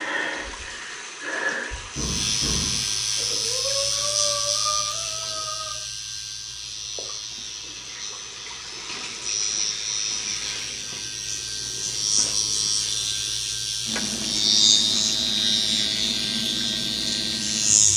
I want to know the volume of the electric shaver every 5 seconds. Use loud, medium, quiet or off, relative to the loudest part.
loud, medium, loud, loud.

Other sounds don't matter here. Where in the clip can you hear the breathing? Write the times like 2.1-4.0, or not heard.
0.0-5.8.